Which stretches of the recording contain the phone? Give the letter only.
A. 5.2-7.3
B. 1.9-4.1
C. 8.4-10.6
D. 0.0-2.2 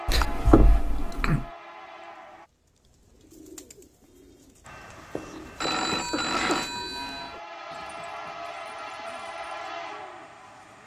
A.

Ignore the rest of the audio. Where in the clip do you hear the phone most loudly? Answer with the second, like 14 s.
6 s.